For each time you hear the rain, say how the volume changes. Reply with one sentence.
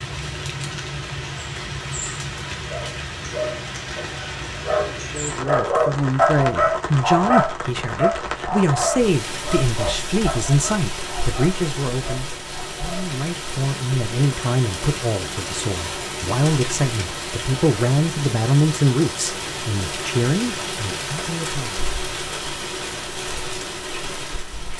You can hear the rain from 0.0 to 24.7 s, at a steady volume.